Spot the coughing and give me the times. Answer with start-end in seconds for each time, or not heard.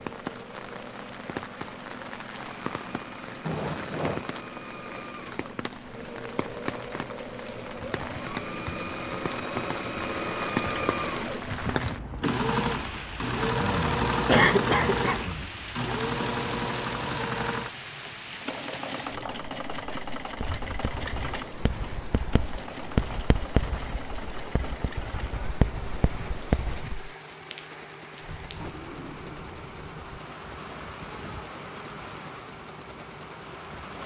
14.2-15.2.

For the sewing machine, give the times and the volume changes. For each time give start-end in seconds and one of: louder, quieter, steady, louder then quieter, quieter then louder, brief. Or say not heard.
0.0-34.0 louder then quieter.